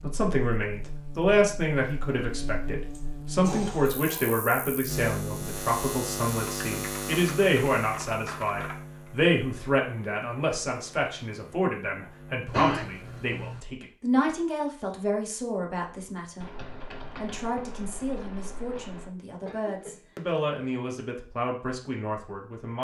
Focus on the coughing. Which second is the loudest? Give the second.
13 s.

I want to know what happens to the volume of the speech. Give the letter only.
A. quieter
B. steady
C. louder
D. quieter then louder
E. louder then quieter
A.